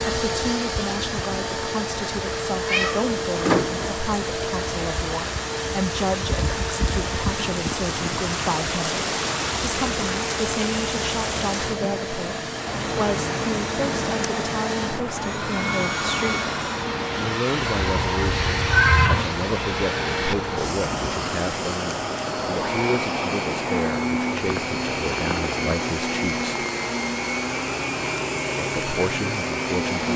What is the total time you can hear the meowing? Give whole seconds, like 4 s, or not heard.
3 s.